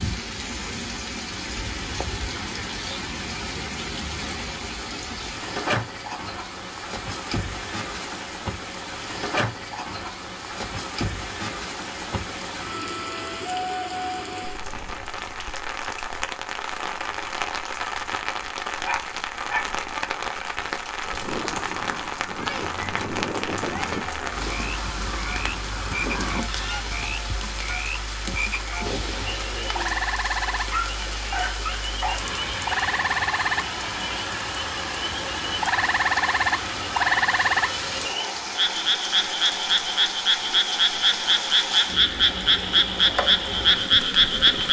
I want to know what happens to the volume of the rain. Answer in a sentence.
The loudness of the rain stays about the same.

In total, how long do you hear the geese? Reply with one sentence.
The geese can be heard for 6 seconds in total.